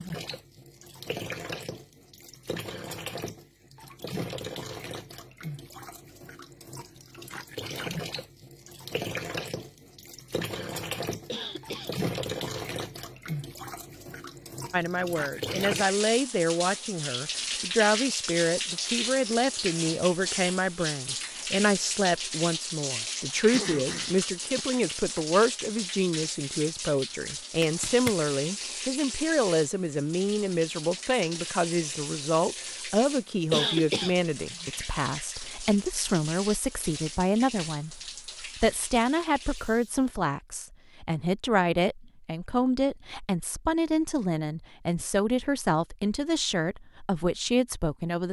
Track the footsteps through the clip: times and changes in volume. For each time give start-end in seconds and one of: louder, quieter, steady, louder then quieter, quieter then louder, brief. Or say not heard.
not heard.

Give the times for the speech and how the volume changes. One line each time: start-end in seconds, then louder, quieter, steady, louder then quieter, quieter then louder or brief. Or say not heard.
14.7-48.2 steady.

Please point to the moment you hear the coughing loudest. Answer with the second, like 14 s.
34 s.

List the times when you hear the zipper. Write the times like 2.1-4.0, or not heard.
27.6-28.1.